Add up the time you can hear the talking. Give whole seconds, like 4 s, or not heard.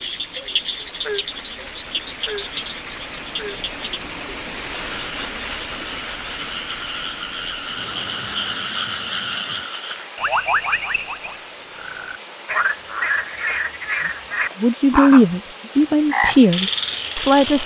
3 s.